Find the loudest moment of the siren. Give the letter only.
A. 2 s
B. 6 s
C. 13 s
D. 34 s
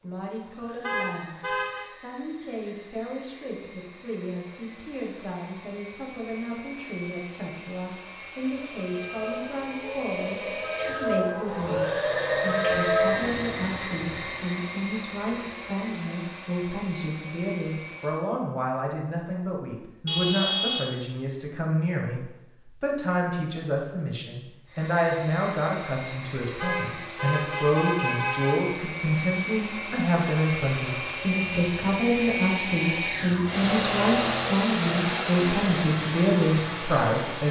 C.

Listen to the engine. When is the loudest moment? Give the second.
34 s.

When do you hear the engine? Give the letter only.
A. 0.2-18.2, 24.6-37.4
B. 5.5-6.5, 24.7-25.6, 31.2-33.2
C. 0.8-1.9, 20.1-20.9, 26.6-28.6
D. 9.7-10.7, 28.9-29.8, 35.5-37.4
A.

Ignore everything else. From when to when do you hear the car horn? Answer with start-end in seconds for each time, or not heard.
0.8-1.9, 20.1-20.9, 26.6-28.6.